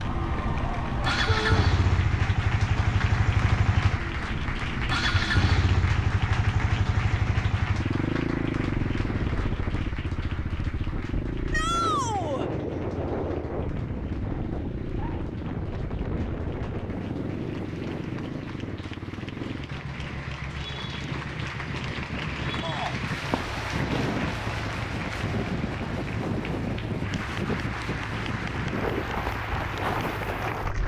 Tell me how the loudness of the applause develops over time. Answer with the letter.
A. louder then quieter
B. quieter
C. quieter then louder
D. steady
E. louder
C.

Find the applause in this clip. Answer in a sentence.
The applause can be heard from 0.0 to 30.8 s.